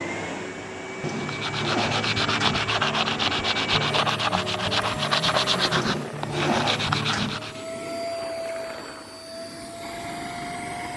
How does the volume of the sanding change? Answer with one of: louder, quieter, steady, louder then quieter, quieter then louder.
steady.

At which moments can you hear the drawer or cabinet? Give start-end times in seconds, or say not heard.
1.0-2.7, 5.8-7.4.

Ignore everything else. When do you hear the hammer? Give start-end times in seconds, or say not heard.
not heard.